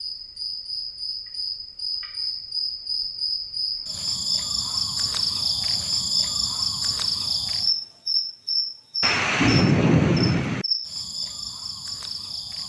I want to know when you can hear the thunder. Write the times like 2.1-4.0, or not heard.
9.0-10.7.